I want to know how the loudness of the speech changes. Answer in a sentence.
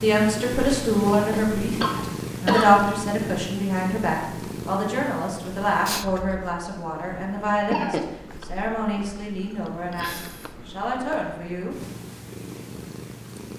The loudness of the speech goes down.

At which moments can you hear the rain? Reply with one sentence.
The rain can't be heard in this clip.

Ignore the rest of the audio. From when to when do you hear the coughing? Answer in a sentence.
The coughing can be heard from 1.1 to 2.8 s and from 7.7 to 8.4 s.